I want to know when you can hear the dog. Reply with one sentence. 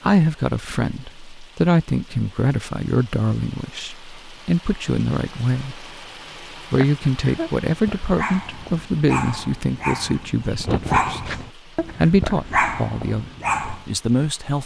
The dog can be heard from 6.8 to 13.8 s.